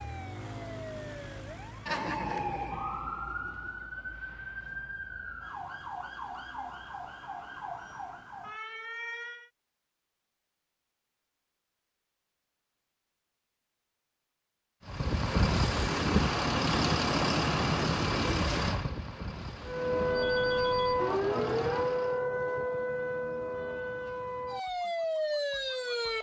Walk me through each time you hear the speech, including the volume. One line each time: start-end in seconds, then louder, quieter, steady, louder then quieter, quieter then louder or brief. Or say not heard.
not heard.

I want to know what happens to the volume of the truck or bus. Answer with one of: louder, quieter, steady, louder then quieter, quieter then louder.
quieter.